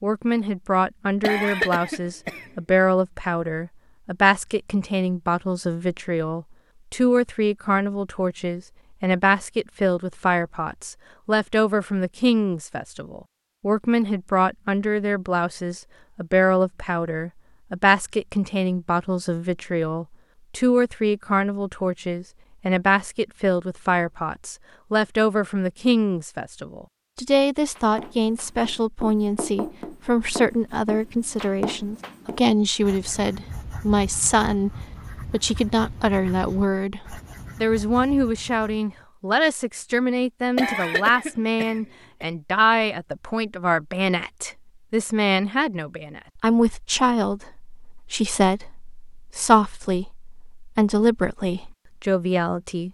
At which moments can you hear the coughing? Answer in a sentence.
The coughing can be heard from 1.2 to 2.5 s and from 40.5 to 42.2 s.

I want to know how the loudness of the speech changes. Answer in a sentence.
The volume of the speech stays about the same.